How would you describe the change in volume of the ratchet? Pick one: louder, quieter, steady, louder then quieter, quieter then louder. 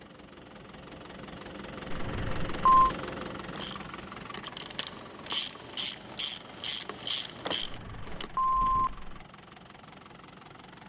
louder.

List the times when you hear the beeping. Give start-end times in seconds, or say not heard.
1.9-2.7, 7.6-9.2.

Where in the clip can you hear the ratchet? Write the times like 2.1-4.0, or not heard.
3.4-8.3.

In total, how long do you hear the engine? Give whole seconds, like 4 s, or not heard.
11 s.